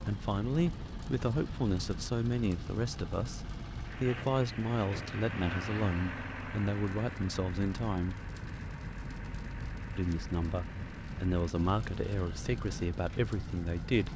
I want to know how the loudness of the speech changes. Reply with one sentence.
The volume of the speech stays about the same.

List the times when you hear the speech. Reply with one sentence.
You can hear the speech from 0.0 to 8.2 s and from 9.9 to 14.1 s.